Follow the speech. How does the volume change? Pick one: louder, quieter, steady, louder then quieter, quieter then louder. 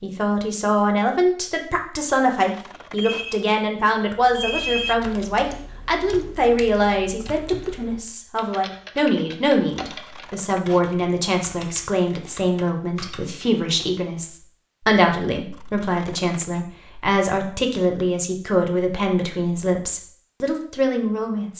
steady.